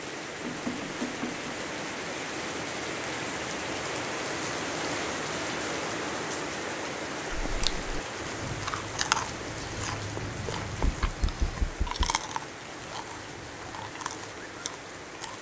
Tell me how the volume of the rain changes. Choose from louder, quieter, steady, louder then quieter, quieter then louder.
quieter.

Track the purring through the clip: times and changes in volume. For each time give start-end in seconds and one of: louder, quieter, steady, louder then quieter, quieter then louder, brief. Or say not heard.
not heard.